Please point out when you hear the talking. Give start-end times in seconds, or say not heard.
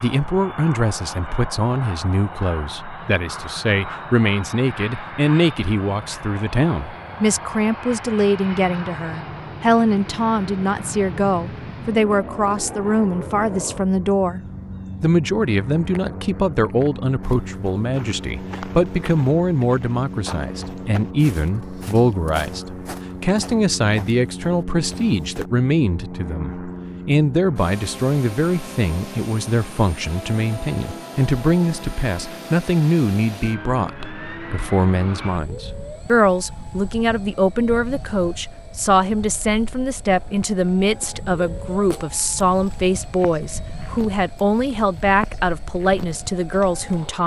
0.0-14.4, 15.0-47.2.